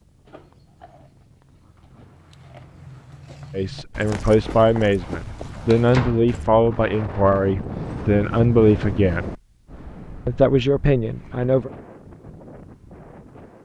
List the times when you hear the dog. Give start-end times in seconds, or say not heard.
not heard.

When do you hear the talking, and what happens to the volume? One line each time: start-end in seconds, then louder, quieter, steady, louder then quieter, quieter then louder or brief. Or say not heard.
3.5-9.3 steady
10.2-11.7 brief.